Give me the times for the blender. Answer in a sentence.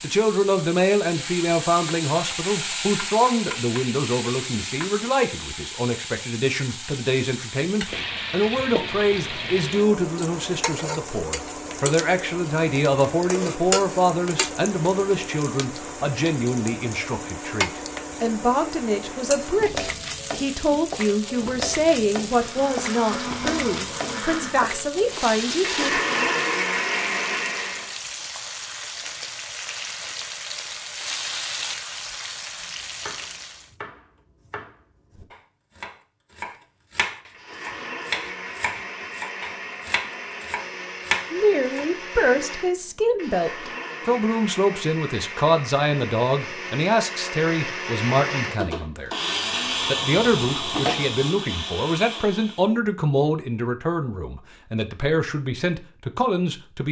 You can hear the blender from 22.3 to 27.9 s and from 37.3 to 52.7 s.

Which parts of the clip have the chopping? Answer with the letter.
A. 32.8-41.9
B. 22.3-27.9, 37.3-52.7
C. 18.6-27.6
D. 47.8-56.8
A.